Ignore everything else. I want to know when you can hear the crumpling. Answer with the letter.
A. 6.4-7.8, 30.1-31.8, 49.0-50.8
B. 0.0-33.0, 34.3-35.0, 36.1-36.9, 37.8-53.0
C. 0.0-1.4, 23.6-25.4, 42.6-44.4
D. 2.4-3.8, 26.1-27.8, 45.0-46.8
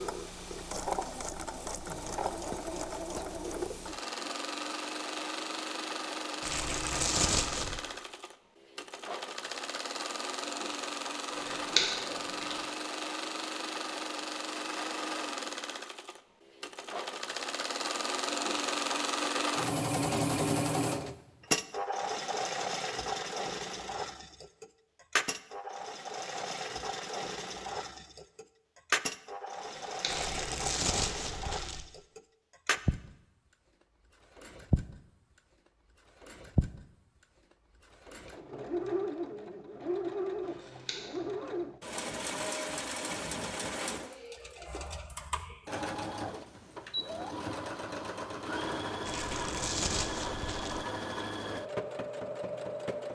A.